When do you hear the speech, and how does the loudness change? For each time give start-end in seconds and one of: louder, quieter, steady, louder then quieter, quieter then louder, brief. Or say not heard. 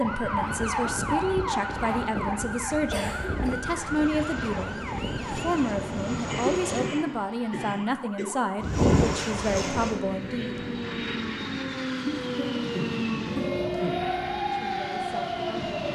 0.0-10.6 steady
14.5-15.7 brief.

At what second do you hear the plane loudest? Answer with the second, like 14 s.
9 s.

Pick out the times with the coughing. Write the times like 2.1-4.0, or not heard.
2.9-3.6, 6.3-8.2, 12.1-14.1.